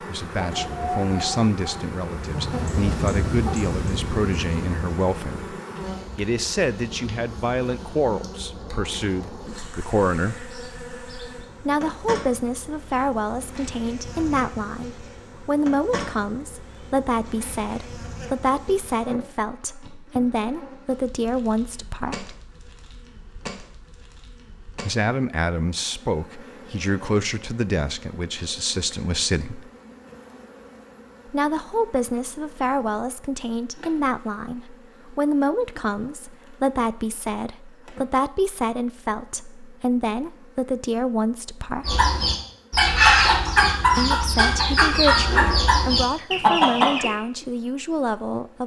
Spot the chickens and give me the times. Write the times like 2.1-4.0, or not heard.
0.3-5.4, 41.9-47.1.